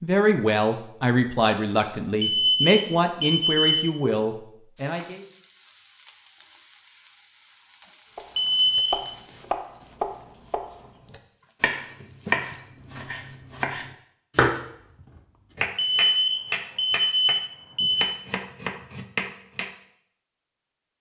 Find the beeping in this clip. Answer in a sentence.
You can hear the beeping from 2.2 to 3.8 s, from 8.3 to 9.1 s and from 15.8 to 18.1 s.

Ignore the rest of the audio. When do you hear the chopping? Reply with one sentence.
The chopping can be heard from 8.2 to 19.7 s.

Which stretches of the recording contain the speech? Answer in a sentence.
You can hear the speech from 0.0 to 5.2 s.